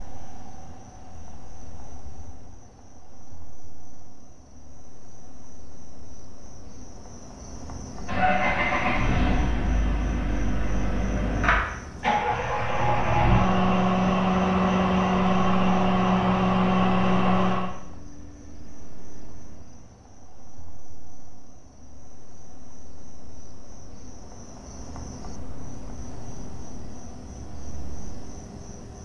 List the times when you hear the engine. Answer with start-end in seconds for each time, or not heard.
8.0-17.7.